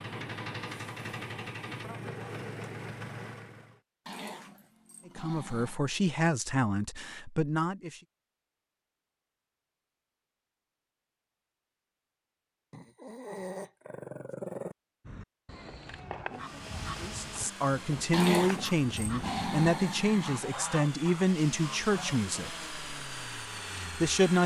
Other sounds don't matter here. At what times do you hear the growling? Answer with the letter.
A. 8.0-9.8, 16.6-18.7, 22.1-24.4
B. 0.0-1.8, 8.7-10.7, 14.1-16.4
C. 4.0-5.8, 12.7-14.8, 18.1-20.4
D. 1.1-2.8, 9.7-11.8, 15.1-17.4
C.